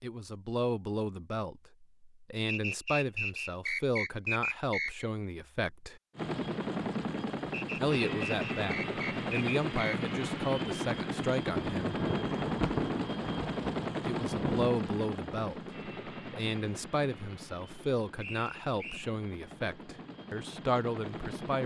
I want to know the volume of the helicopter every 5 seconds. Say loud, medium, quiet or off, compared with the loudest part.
off, loud, loud, medium, medium.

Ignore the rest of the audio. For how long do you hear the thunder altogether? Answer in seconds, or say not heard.
3 s.